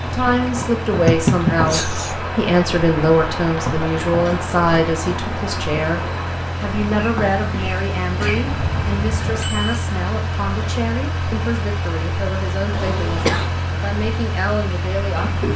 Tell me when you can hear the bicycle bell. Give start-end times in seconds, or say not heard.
8.4-9.8.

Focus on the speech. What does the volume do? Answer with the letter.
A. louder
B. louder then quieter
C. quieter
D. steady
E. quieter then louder
C.